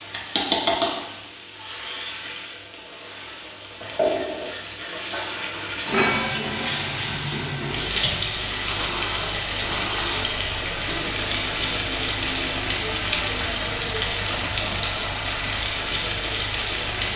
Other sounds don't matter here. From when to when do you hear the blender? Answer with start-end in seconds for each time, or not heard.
8.6-13.8.